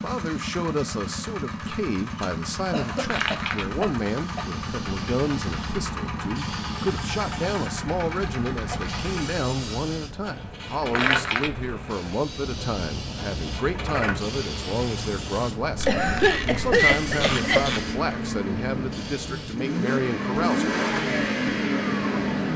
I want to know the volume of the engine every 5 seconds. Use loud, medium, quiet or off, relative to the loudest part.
medium, medium, medium, medium, loud.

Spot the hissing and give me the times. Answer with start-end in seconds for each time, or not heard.
3.0-19.6.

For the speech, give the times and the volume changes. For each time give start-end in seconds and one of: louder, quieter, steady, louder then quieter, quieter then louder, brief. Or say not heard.
0.0-20.8 steady.